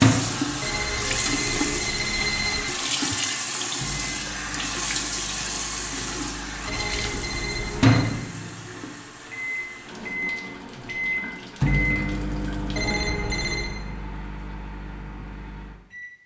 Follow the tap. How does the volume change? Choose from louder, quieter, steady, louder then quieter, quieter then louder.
quieter.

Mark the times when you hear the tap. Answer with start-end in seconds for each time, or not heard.
0.0-13.0.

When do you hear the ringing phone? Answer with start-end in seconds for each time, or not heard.
0.6-2.6, 6.7-8.1, 12.8-13.8.